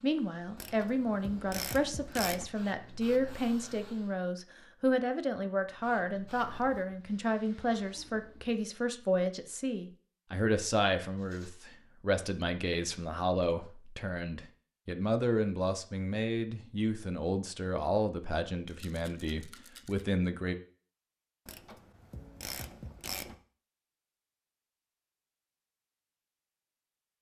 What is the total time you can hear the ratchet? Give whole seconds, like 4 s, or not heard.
4 s.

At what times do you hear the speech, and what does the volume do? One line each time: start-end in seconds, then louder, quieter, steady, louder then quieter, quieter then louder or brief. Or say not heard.
0.0-20.6 steady.